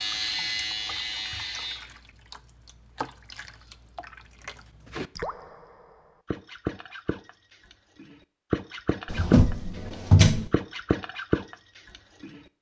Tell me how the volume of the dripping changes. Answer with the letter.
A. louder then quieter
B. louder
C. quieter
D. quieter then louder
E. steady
B.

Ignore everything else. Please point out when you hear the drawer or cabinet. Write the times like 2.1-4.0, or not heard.
9.1-10.5.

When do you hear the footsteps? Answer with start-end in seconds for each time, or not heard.
not heard.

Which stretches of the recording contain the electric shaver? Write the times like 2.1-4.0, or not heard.
0.0-1.8.